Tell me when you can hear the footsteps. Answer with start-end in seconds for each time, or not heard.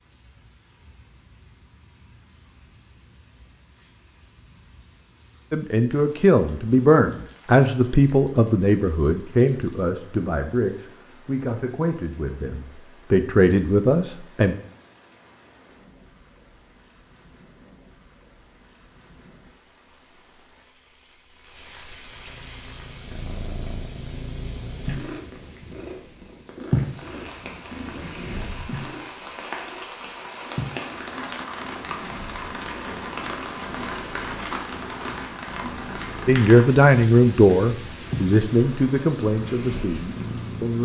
not heard.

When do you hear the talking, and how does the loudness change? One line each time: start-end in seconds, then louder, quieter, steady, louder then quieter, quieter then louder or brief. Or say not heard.
5.5-14.6 quieter then louder
36.2-40.7 quieter.